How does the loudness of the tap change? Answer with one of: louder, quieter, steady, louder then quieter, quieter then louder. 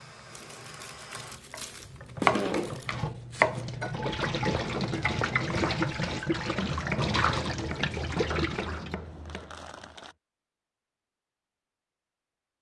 louder.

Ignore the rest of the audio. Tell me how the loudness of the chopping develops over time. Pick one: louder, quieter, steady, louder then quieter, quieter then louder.
quieter.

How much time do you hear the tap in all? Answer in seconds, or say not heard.
9 s.